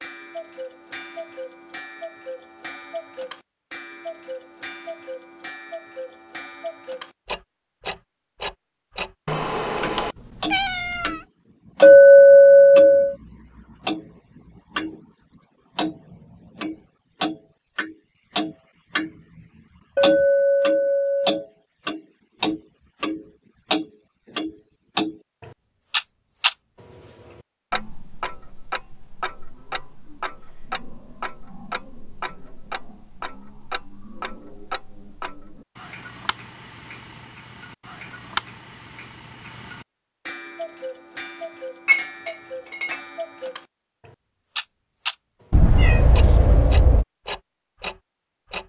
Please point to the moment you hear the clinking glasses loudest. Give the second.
12 s.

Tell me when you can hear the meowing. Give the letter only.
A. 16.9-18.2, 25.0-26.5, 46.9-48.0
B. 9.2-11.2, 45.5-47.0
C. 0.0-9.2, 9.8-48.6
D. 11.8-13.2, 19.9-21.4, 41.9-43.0
B.